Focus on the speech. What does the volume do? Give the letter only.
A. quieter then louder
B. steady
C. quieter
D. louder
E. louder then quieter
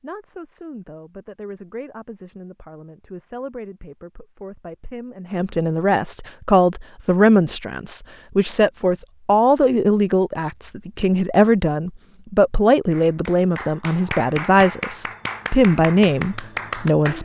D.